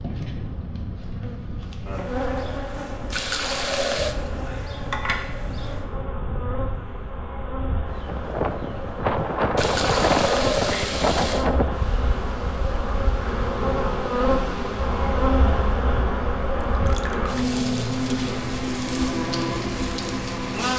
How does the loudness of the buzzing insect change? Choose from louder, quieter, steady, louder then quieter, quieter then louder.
louder.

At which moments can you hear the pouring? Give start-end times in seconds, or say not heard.
3.1-4.2, 9.6-11.5, 16.7-17.4.